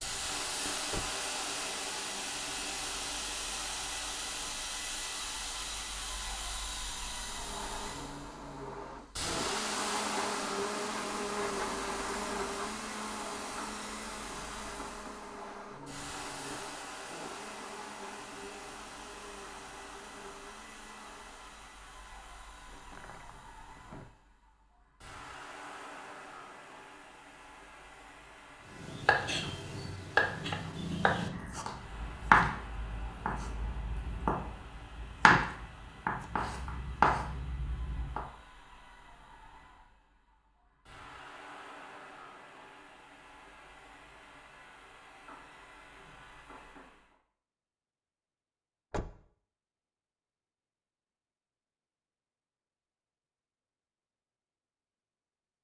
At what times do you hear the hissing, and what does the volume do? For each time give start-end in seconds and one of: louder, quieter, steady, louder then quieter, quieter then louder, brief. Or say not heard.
0.0-47.1 quieter.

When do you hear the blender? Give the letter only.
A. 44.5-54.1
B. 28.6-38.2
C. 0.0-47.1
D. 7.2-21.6
D.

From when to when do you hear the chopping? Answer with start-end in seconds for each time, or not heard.
28.6-38.2.